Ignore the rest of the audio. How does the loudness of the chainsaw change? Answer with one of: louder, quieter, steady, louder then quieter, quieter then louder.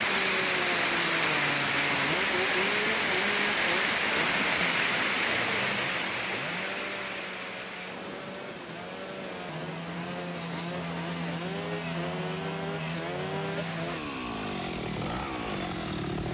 quieter then louder.